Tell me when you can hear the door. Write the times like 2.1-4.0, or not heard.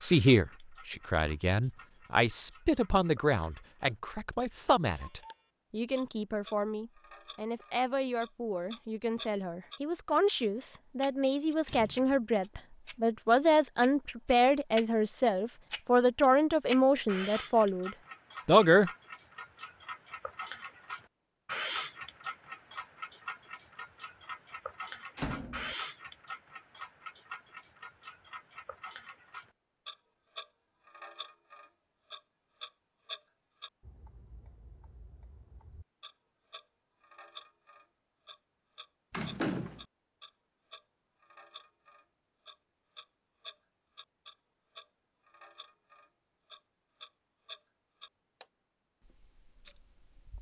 11.7-12.2, 25.1-25.8, 39.1-39.9.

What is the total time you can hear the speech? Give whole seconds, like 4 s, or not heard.
19 s.